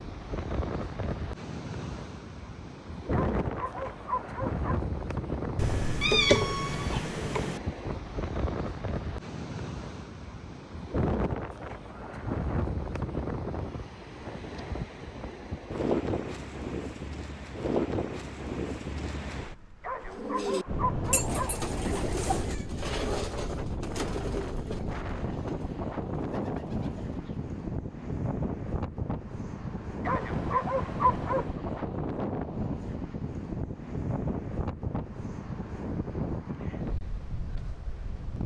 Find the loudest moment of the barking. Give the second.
31 s.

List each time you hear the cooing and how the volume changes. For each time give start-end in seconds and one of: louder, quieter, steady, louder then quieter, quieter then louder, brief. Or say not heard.
20.0-27.4 quieter.